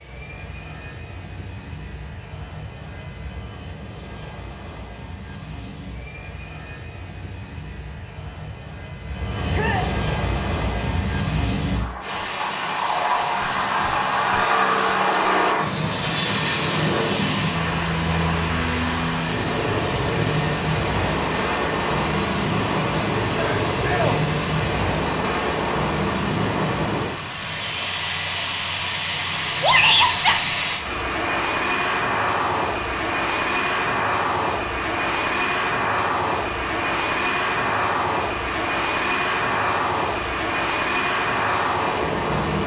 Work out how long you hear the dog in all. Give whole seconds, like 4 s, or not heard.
not heard.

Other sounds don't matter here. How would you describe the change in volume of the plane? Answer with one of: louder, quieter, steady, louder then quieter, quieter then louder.
louder.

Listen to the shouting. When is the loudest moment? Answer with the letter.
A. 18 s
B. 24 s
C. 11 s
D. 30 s
D.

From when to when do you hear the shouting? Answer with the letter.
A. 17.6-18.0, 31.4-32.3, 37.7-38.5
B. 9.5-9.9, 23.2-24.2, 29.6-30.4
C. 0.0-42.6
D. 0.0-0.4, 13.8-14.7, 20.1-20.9
B.